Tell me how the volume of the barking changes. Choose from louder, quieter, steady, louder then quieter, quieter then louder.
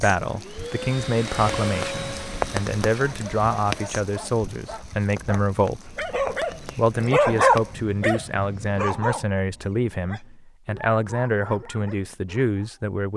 louder then quieter.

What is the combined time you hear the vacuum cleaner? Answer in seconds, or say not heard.
4 s.